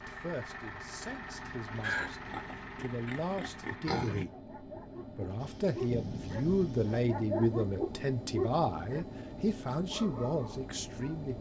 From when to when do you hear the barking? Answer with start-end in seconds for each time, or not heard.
4.1-9.1, 9.8-11.2.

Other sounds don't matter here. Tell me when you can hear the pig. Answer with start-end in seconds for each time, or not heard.
1.8-4.2.